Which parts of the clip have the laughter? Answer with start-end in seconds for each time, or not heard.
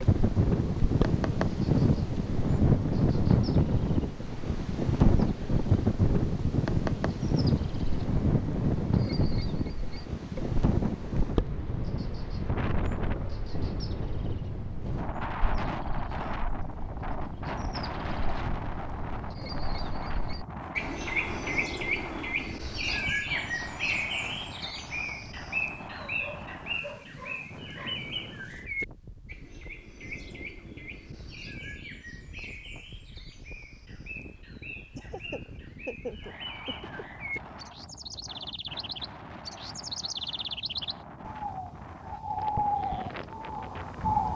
35.0-37.2.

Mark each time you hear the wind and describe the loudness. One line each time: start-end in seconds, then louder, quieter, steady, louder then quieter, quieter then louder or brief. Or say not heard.
0.0-44.2 quieter.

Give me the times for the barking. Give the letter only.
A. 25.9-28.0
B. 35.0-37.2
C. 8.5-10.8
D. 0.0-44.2
A.